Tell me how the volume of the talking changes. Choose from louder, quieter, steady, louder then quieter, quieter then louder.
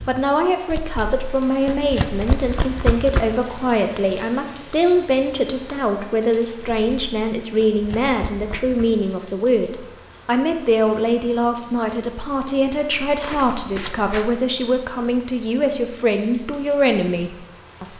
steady.